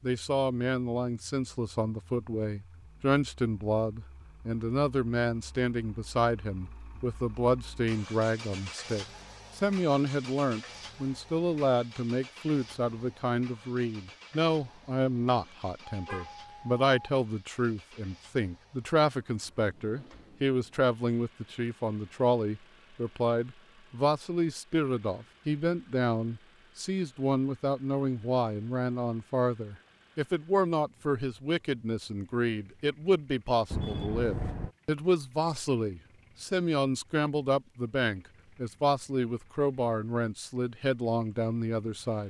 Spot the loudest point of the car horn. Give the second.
34 s.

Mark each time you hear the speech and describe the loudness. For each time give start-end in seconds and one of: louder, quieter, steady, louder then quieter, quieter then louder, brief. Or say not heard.
0.0-42.2 steady.